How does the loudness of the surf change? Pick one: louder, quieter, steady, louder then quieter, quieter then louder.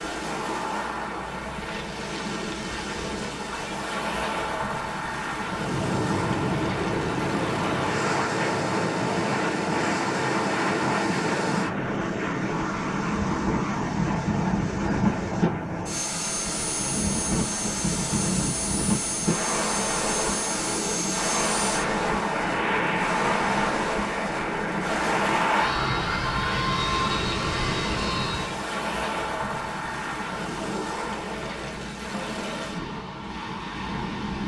steady.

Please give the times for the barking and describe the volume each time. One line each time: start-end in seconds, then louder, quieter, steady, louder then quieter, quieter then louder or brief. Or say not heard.
not heard.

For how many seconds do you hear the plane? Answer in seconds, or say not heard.
23 s.